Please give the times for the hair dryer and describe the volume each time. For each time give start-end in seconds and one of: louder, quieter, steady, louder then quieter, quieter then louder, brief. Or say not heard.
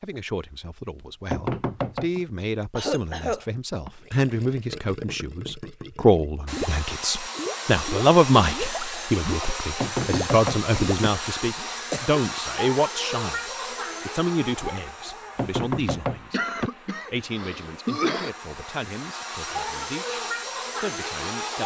6.5-21.6 quieter then louder.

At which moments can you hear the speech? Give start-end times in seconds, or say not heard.
0.0-13.4, 14.1-16.4, 17.1-20.2, 20.8-21.6.